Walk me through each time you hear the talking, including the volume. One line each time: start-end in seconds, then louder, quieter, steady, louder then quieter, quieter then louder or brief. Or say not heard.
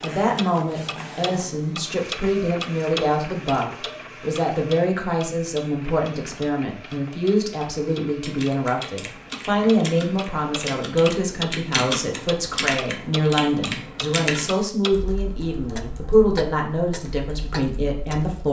0.0-18.4 steady.